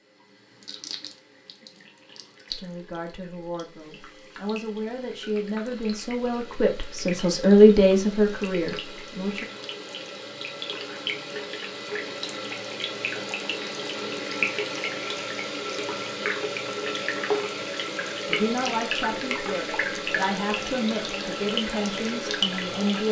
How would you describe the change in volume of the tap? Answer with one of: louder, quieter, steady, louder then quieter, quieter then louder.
louder.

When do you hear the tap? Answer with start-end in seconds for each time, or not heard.
0.0-23.0.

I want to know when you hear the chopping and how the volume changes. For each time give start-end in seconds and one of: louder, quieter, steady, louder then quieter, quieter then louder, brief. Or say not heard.
not heard.